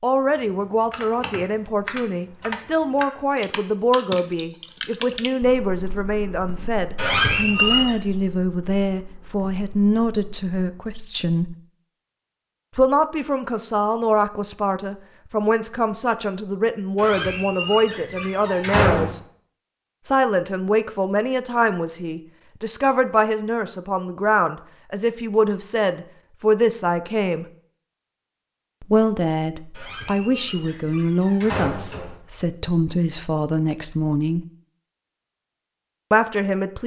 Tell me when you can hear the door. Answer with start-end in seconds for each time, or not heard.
7.0-8.0, 16.9-19.1, 29.8-32.1.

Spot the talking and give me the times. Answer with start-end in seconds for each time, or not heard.
0.0-11.6, 12.8-19.2, 20.1-27.4, 28.8-34.5, 36.1-36.8.